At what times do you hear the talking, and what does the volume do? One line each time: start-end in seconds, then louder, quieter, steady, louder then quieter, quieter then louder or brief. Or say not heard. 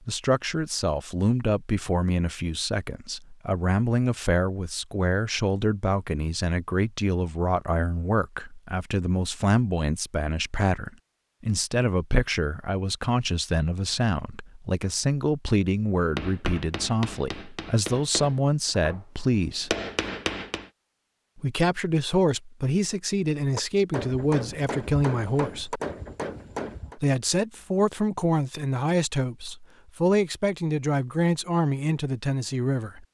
0.1-19.7 steady
21.4-25.8 steady
26.9-33.1 steady.